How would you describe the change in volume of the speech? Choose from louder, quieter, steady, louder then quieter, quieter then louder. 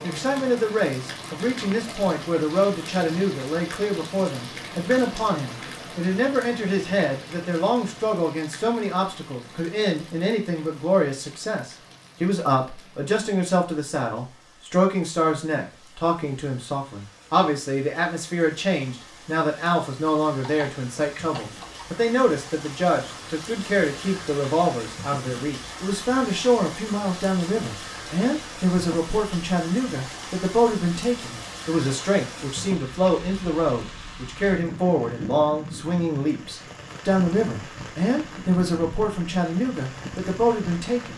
steady.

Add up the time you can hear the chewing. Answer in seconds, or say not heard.
not heard.